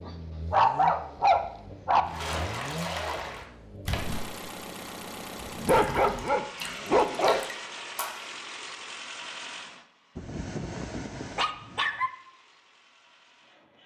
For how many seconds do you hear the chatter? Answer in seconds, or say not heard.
not heard.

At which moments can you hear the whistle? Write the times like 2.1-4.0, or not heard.
not heard.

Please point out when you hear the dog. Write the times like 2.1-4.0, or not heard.
0.1-2.0, 5.4-7.4, 10.2-12.1.